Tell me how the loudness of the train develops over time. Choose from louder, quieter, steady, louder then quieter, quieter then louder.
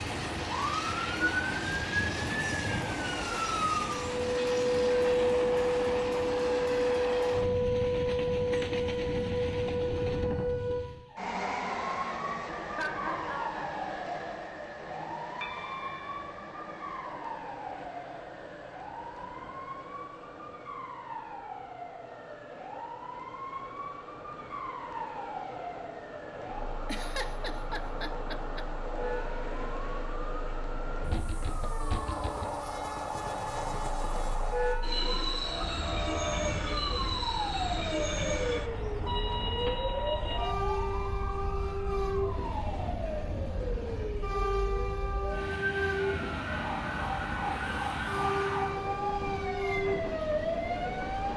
quieter then louder.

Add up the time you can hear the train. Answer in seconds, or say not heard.
51 s.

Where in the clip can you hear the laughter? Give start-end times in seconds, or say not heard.
12.7-13.6, 26.9-28.6.